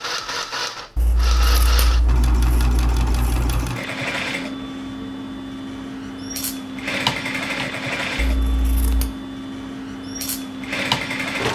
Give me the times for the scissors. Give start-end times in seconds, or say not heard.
0.9-3.7, 8.2-9.1.